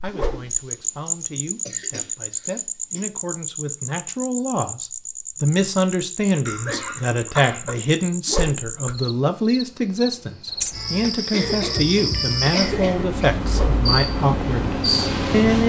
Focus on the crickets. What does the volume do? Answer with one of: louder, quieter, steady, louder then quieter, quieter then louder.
quieter then louder.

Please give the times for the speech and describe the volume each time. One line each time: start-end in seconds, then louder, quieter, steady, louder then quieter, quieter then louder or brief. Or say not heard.
0.0-15.6 louder.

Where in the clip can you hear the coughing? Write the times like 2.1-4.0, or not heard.
1.6-3.0, 6.5-7.8, 11.3-13.2.